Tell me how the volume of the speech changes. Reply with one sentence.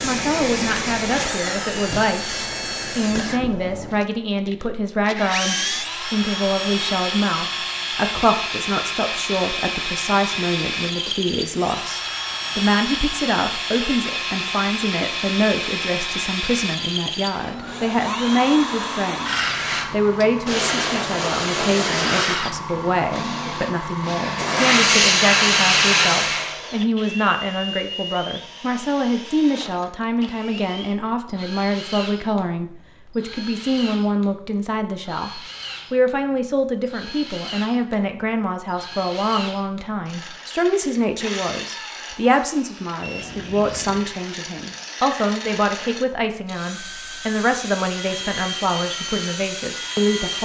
The volume of the speech stays about the same.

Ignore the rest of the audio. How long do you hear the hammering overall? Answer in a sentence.
You can't hear the hammering here.